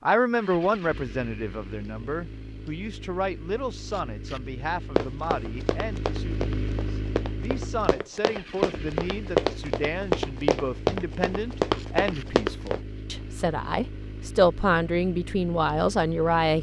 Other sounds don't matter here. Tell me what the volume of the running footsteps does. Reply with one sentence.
The volume of the running footsteps goes up.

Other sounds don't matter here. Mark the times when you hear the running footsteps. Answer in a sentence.
You can hear the running footsteps from 5.0 to 12.8 s.